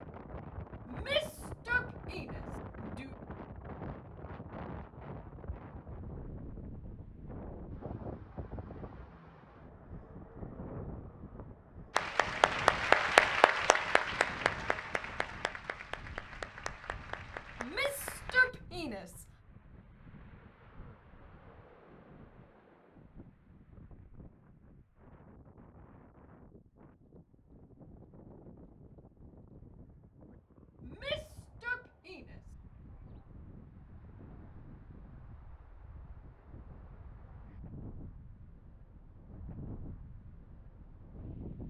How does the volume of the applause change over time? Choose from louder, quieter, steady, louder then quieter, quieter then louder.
quieter.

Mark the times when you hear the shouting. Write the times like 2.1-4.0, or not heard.
0.8-3.1, 17.6-19.2, 30.9-32.4.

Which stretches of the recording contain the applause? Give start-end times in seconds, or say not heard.
11.9-18.5.